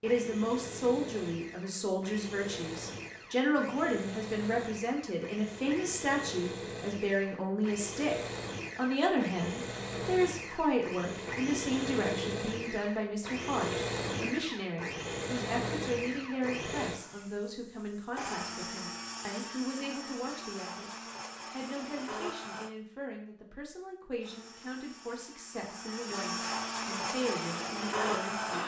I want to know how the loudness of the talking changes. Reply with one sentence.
The loudness of the talking goes down.